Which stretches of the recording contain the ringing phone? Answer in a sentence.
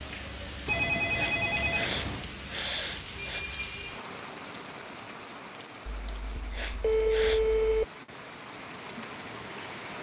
You can hear the ringing phone from 0.7 to 2.3 s and from 5.8 to 7.8 s.